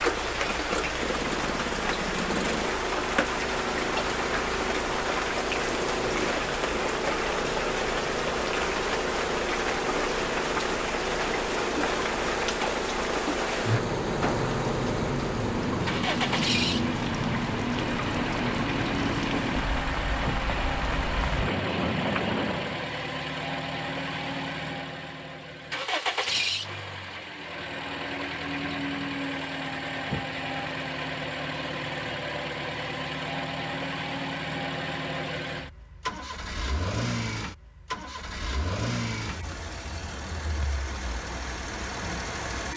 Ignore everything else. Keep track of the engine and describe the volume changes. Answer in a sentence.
The loudness of the engine stays about the same.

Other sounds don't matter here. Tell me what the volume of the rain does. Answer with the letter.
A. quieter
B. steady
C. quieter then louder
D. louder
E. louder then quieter
B.